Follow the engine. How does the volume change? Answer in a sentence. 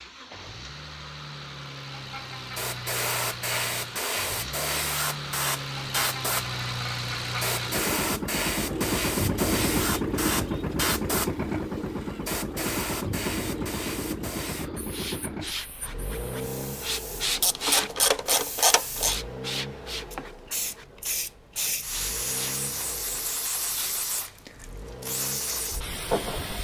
The loudness of the engine goes up, then down.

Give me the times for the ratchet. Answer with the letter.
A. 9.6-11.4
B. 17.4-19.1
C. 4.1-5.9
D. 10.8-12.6
B.